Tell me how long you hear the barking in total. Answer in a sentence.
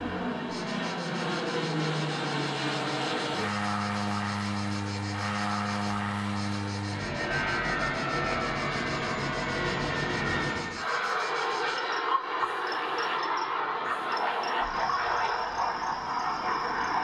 You can't hear the barking here.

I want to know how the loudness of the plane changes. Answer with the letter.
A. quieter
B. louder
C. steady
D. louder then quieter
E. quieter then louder
C.